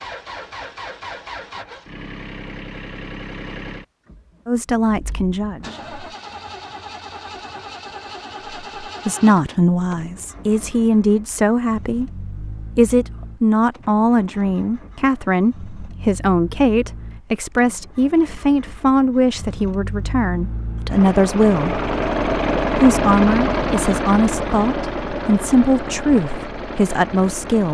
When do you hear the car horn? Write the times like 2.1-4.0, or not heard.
not heard.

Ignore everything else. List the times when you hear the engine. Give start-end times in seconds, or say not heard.
0.0-27.6.